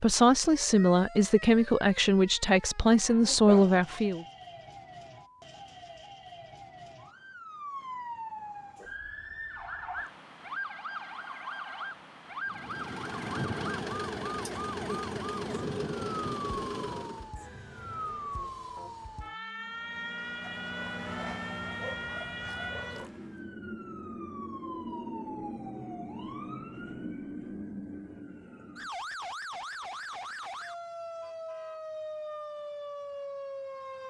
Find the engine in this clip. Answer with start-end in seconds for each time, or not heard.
12.4-17.3, 19.6-23.5.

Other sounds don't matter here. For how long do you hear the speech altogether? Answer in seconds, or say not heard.
4 s.